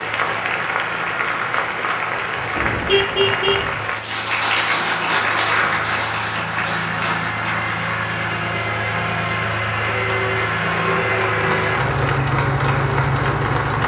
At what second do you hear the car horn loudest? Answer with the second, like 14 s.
3 s.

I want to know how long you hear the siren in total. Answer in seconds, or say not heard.
not heard.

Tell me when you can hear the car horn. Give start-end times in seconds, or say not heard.
2.5-3.7, 9.8-11.9.